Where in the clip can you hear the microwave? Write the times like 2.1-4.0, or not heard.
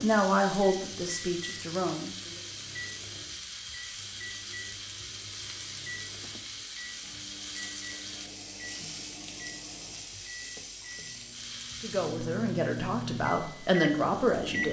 0.0-14.6.